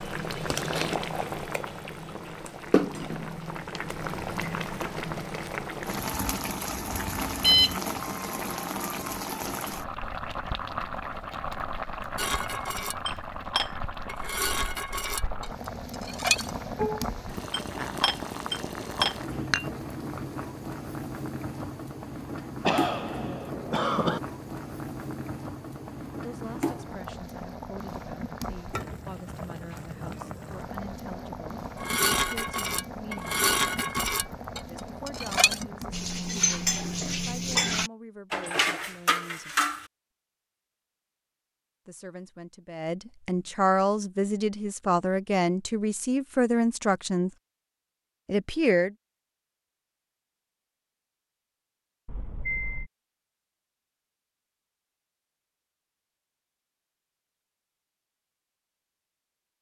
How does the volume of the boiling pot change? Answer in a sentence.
The volume of the boiling pot goes down.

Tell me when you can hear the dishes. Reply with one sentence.
The dishes can be heard from 12.2 to 19.7 s and from 31.8 to 39.9 s.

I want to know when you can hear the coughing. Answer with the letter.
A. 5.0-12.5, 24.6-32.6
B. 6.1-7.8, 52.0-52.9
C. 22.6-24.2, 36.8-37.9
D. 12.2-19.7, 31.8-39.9
C.